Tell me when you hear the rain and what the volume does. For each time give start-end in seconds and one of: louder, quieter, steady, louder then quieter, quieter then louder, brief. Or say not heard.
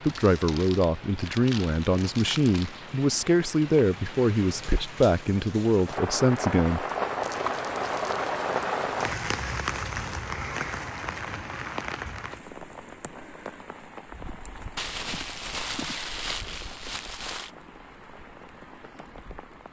0.0-19.6 louder then quieter.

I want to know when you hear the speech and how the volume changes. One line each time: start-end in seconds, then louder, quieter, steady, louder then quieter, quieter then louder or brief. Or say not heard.
0.1-6.8 steady.